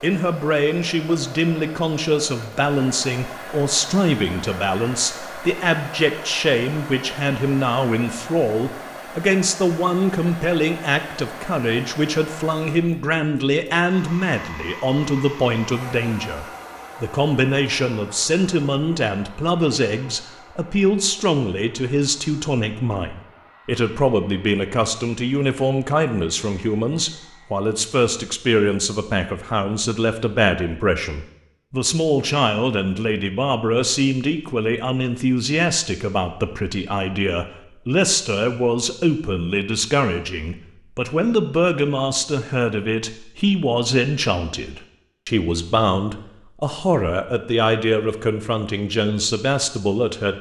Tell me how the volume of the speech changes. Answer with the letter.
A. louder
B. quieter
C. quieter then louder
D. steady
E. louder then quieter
D.